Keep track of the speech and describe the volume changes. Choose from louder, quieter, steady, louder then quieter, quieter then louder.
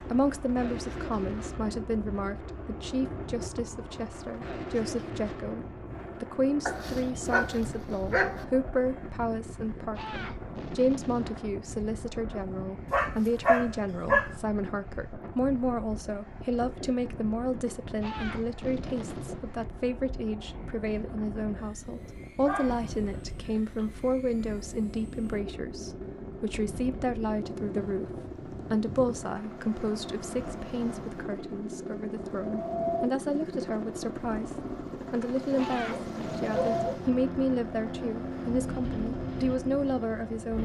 steady.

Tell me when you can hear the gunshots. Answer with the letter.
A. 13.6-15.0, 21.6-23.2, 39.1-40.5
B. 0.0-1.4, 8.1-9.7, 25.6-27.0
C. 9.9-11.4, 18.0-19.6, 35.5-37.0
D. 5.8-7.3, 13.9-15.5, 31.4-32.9
C.